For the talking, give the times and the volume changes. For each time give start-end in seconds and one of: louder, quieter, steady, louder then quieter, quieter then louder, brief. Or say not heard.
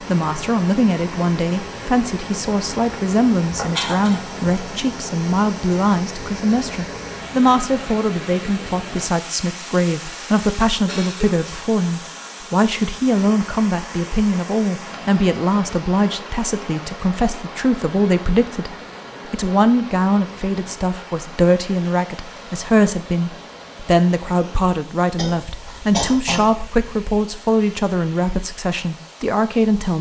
0.0-29.9 steady.